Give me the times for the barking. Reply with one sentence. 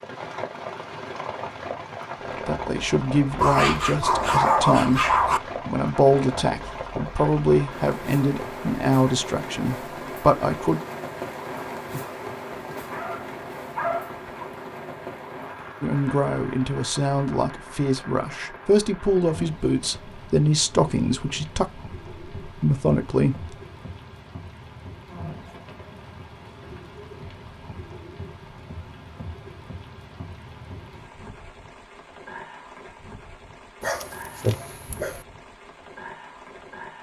You can hear the barking from 3.4 to 5.4 s, from 12.9 to 14.4 s and from 33.8 to 35.2 s.